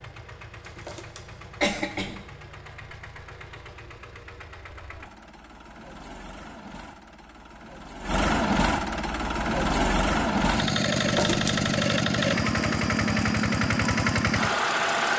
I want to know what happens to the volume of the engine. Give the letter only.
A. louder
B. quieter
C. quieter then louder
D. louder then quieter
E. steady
A.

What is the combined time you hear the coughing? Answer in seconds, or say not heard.
2 s.